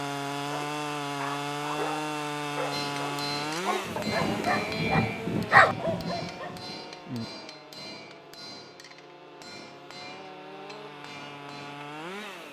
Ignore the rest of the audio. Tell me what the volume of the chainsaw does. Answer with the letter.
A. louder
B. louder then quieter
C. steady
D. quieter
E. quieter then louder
E.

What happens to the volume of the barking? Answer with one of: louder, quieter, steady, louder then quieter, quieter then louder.
louder then quieter.